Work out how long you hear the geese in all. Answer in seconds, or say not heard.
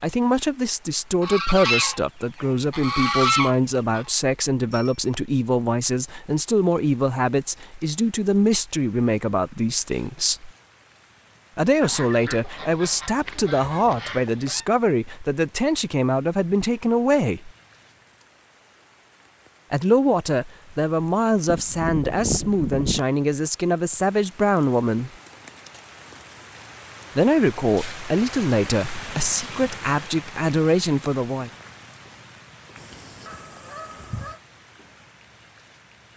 9 s.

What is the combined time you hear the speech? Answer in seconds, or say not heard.
26 s.